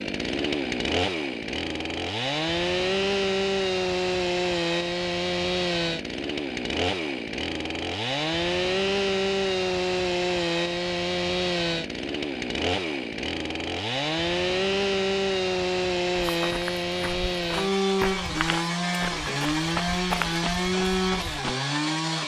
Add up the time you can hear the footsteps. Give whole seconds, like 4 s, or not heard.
5 s.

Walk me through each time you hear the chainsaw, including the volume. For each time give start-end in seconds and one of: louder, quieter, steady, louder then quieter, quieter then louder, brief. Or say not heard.
0.0-22.2 steady.